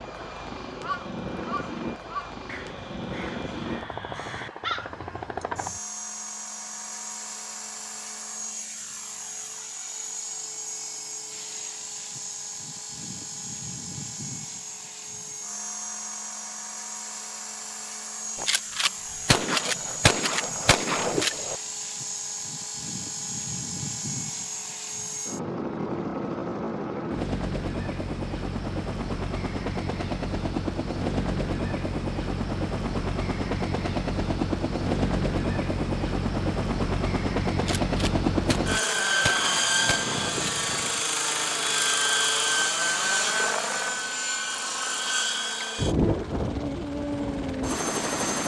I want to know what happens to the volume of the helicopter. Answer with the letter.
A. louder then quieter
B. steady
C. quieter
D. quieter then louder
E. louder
E.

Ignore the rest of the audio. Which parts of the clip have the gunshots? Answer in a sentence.
You can hear the gunshots from 18.4 to 21.6 s and from 37.5 to 40.6 s.